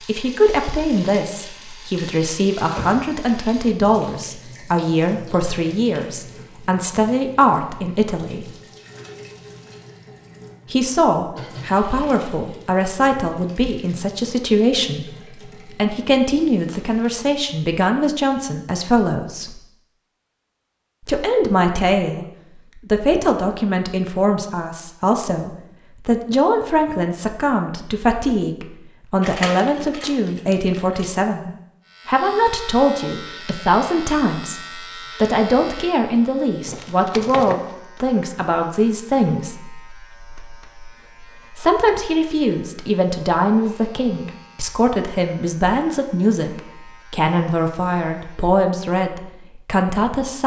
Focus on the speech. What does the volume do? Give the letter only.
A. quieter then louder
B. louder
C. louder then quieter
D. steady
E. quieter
D.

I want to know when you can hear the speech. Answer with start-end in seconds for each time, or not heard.
0.1-8.5, 10.7-19.6, 21.1-50.4.